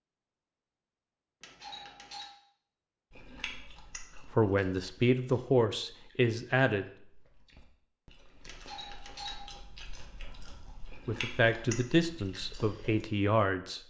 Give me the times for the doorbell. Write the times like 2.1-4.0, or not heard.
1.4-2.3, 8.4-9.6.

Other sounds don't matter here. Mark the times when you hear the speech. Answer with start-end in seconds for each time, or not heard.
4.3-6.9, 11.1-13.8.